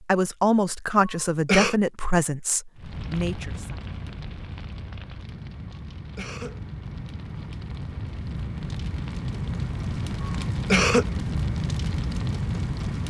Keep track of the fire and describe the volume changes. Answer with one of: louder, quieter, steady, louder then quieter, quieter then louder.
louder.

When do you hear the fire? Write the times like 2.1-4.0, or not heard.
2.8-13.0.